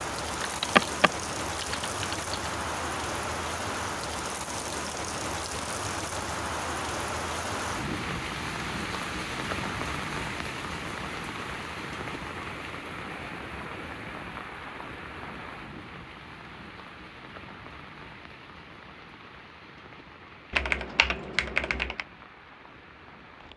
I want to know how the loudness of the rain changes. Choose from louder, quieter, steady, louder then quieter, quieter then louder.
quieter.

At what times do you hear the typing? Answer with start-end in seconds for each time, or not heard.
0.3-2.4, 20.5-22.1.